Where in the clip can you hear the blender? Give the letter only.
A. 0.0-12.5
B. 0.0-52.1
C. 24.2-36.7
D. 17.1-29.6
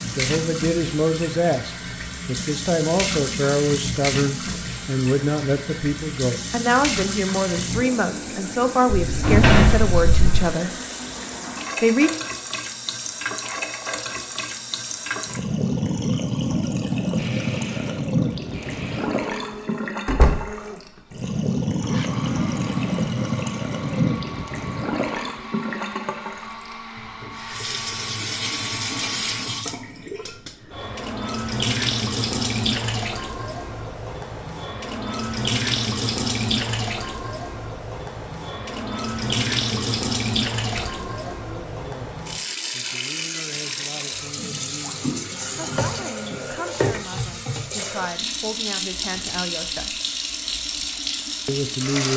D.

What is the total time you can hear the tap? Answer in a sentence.
The tap can be heard for 52 seconds in total.